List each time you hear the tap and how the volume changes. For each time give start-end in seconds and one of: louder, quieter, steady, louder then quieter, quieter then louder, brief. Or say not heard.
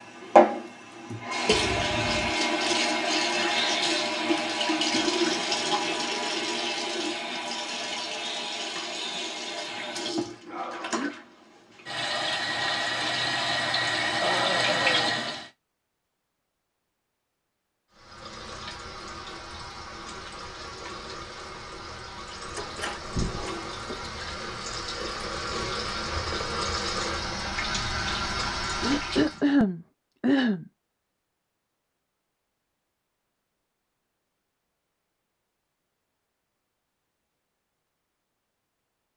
0.0-15.5 quieter then louder
17.9-29.4 louder.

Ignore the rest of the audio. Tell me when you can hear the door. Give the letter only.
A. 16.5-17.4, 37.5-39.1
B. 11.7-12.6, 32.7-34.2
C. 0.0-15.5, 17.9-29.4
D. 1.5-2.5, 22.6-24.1
D.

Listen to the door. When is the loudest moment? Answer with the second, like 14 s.
23 s.